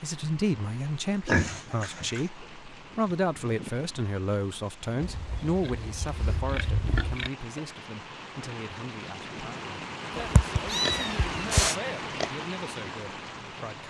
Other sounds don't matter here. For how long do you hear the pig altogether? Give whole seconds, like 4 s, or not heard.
5 s.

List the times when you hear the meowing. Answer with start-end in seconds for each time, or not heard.
10.2-11.7.